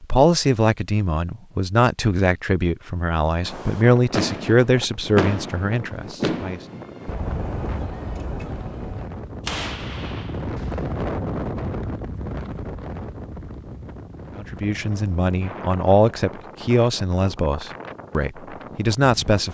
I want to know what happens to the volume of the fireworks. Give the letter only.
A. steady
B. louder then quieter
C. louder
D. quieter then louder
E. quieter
E.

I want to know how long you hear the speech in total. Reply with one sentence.
You can hear the speech for 12 seconds altogether.